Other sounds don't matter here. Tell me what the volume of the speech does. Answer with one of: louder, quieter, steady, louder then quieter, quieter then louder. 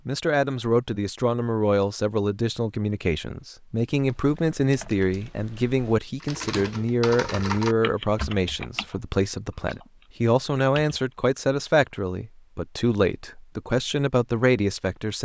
steady.